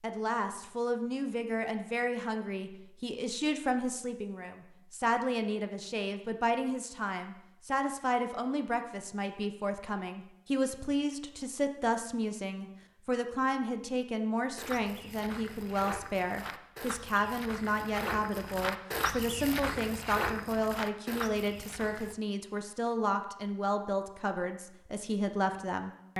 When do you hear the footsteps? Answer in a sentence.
You can hear the footsteps from 14.6 to 22.1 s.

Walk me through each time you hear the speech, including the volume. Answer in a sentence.
You can hear the speech from 0.0 to 26.1 s, at a steady volume.